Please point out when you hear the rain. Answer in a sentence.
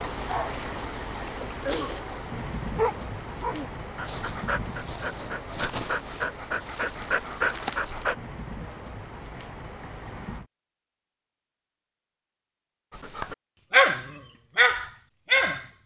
The rain can be heard from 0.0 to 10.5 s.